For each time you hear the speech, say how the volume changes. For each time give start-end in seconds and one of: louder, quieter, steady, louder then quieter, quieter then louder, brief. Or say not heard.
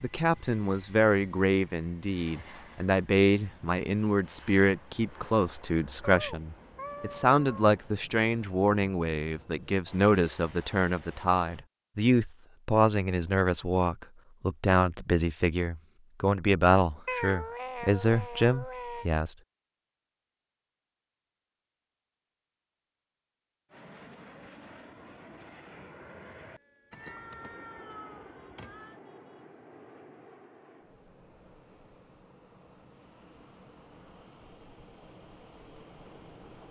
0.0-19.4 steady.